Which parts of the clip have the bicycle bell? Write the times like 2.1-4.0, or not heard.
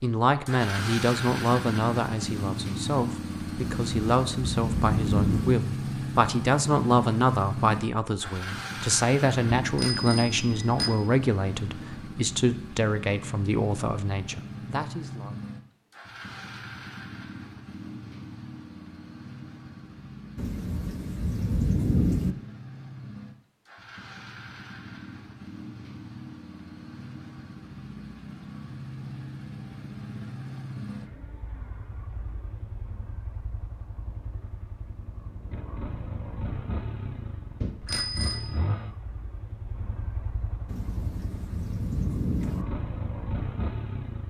9.6-10.9, 37.6-38.5.